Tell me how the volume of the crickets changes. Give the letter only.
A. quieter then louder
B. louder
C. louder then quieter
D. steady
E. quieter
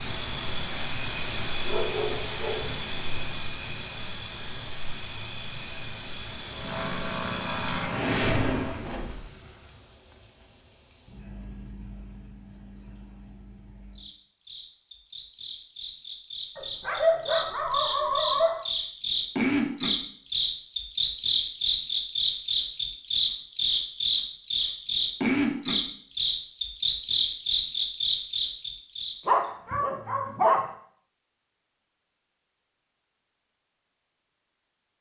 A.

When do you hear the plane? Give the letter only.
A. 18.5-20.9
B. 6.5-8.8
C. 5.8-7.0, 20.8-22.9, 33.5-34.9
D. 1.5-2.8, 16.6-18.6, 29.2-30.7
B.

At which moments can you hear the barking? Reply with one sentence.
You can hear the barking from 1.5 to 2.8 s, from 16.6 to 18.6 s and from 29.2 to 30.7 s.